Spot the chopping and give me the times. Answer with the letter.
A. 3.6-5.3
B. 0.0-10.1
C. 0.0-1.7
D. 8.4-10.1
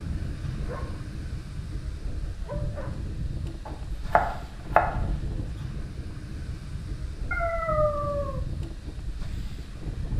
A.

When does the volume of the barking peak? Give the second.
8 s.